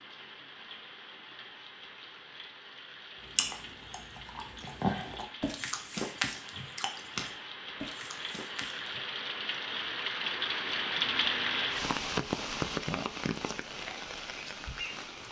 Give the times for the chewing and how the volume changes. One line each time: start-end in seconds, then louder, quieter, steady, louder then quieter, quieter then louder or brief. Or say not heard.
3.4-9.1 louder then quieter.